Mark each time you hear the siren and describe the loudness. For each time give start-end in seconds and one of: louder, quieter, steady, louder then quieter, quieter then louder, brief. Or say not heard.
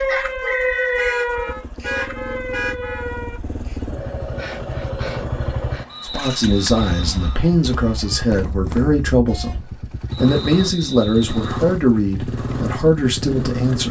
0.0-8.3 quieter.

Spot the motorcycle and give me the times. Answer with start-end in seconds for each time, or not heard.
0.0-13.8.